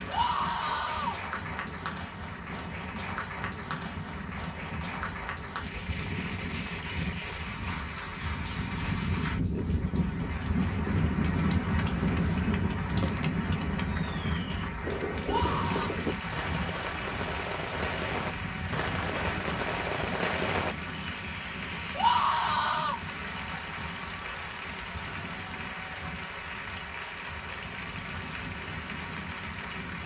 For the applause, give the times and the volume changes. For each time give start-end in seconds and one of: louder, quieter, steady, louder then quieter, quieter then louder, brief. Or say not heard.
0.0-30.0 steady.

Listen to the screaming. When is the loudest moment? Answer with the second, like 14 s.
22 s.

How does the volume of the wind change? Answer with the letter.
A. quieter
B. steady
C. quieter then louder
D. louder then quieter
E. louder
D.